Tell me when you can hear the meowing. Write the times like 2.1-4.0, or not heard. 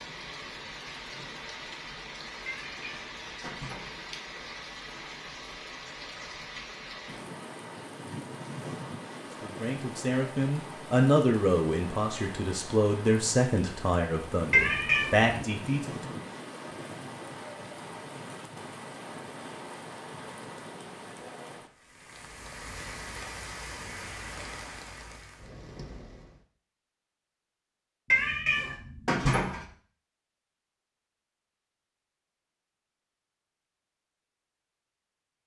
2.5-4.0, 14.5-15.3, 28.1-29.6.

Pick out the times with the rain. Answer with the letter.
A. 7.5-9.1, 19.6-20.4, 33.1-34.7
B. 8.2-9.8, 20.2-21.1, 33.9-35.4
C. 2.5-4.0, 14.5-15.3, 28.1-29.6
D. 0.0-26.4
D.